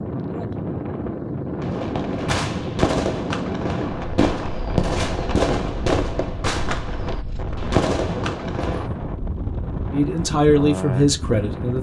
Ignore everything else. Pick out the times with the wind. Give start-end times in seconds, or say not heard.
0.0-11.7.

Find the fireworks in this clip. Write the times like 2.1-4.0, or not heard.
1.6-8.9.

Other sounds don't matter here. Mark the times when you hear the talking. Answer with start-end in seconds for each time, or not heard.
9.9-11.7.